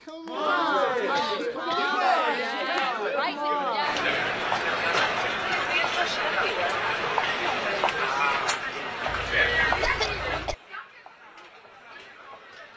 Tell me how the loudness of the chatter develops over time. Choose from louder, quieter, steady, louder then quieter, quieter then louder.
quieter.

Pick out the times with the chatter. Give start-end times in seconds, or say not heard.
0.1-12.7.